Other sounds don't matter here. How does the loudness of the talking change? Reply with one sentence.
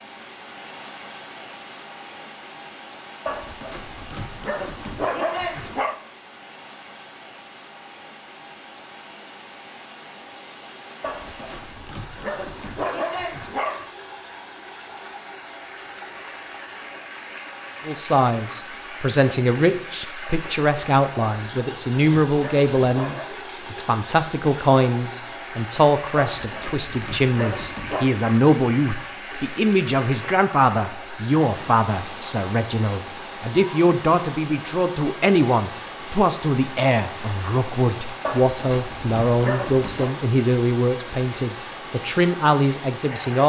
The volume of the talking stays about the same.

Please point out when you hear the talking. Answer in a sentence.
The talking can be heard from 17.9 to 43.4 s.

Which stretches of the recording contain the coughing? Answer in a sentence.
The coughing can't be heard in this clip.